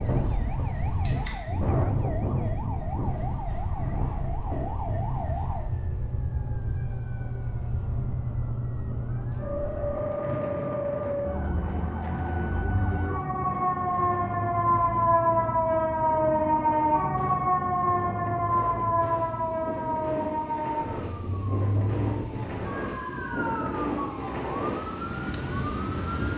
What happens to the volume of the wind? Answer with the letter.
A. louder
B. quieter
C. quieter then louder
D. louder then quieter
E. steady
C.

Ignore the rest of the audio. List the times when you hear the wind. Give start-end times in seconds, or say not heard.
0.0-26.3.